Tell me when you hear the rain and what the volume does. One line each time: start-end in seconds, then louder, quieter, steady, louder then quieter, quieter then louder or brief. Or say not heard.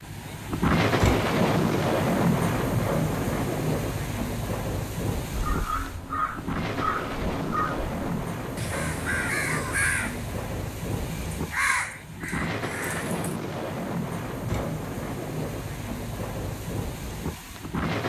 0.0-18.0 quieter.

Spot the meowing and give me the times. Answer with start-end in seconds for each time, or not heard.
not heard.